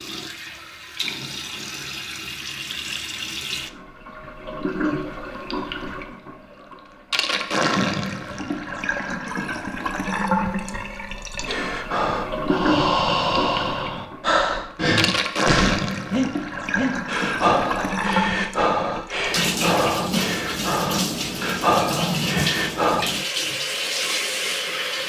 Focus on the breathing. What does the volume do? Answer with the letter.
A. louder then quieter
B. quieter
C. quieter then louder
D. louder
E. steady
E.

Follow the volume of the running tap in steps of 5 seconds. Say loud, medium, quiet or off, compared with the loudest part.
medium, loud, loud, loud, loud.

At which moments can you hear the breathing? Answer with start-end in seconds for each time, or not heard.
11.4-23.1.